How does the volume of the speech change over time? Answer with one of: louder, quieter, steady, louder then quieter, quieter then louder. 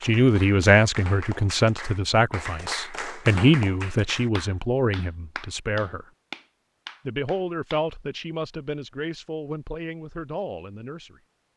quieter.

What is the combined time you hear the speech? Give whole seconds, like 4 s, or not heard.
10 s.